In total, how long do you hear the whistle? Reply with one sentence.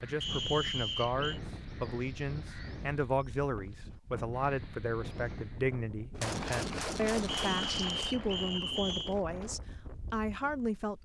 You can hear the whistle for 3 seconds altogether.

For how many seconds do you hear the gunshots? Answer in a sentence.
The gunshots can be heard for 2 seconds in total.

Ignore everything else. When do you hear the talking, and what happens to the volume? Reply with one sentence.
You can hear the talking from 0.0 to 11.0 s, at a steady volume.